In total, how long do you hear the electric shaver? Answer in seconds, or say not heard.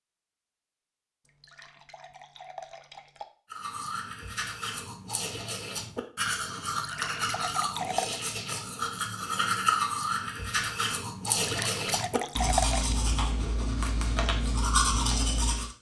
not heard.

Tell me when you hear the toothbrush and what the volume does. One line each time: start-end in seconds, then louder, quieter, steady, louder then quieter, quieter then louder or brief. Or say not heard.
3.5-15.7 louder.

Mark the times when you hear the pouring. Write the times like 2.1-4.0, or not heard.
1.2-3.2, 6.8-8.2, 11.4-12.9.